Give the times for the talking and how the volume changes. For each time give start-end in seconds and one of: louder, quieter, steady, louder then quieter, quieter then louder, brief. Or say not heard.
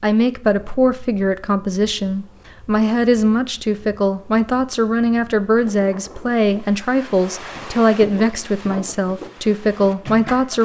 0.0-10.6 steady.